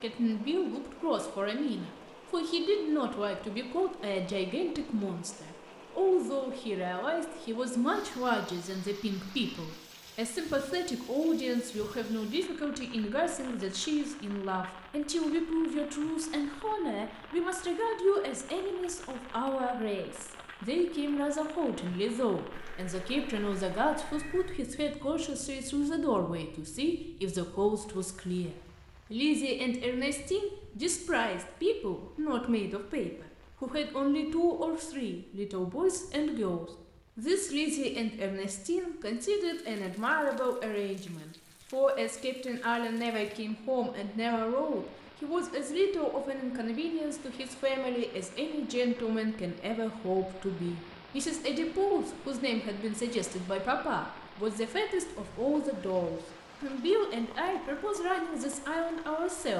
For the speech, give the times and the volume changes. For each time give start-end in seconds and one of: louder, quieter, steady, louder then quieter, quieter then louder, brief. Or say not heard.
0.0-59.5 steady.